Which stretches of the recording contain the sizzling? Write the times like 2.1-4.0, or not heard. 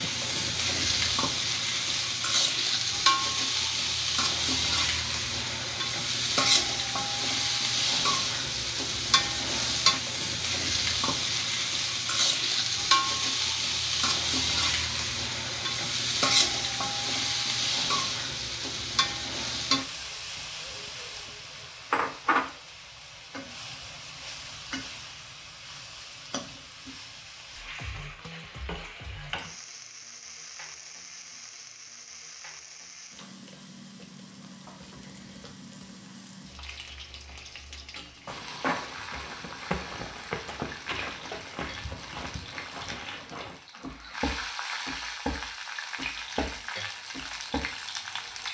0.0-48.4.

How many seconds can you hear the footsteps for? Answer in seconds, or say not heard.
9 s.